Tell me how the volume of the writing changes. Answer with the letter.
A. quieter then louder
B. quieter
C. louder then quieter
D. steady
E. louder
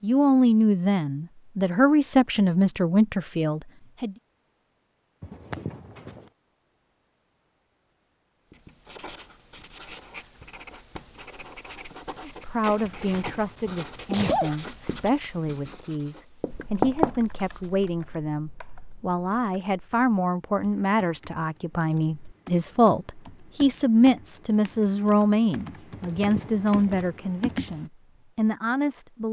E.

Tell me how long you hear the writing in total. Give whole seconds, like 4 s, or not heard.
9 s.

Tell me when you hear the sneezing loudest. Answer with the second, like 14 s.
14 s.